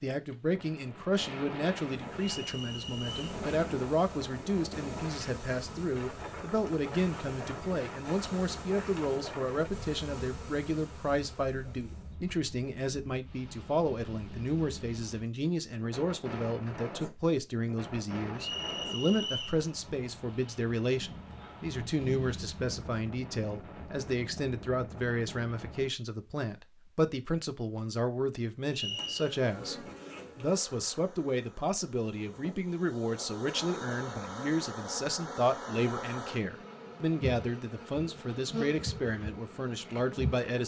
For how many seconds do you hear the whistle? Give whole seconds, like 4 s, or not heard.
3 s.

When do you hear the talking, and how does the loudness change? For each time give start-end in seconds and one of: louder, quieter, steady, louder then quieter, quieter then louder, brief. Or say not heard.
0.0-40.6 steady.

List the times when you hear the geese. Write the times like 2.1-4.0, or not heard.
not heard.